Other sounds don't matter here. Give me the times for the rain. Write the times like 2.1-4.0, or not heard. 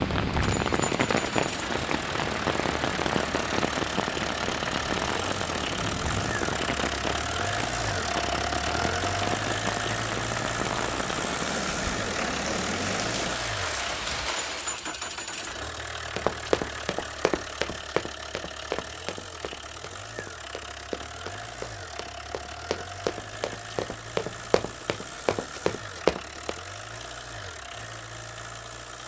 0.0-14.9.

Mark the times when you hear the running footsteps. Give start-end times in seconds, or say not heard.
16.1-26.6.